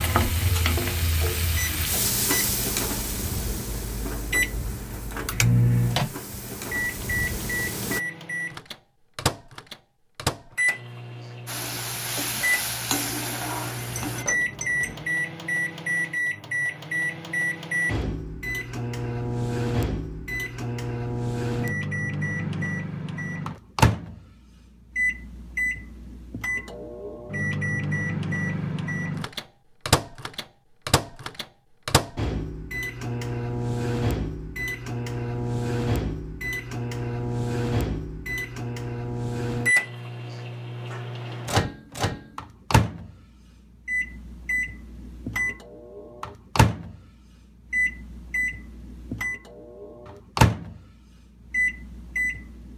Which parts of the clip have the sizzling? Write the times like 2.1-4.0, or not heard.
0.0-8.0, 11.4-14.2.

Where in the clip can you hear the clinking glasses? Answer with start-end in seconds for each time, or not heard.
13.8-15.1.